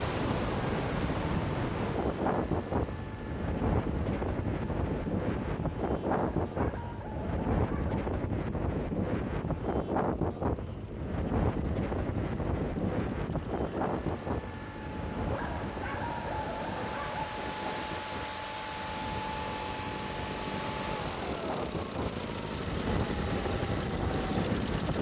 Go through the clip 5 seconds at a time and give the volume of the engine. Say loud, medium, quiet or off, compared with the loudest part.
medium, quiet, medium, loud, loud.